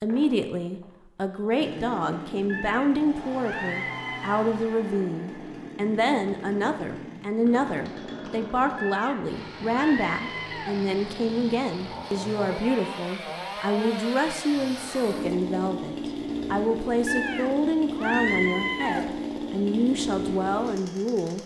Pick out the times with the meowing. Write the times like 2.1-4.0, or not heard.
2.5-4.5, 8.8-10.8, 17.1-19.1.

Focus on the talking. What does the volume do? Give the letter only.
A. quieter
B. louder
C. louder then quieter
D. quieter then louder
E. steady
E.